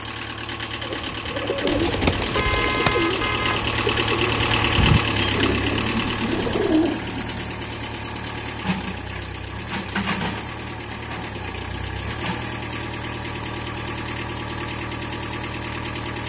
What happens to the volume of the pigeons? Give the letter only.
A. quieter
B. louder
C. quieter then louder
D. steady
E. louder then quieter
C.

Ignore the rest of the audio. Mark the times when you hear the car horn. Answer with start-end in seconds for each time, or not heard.
1.6-3.7.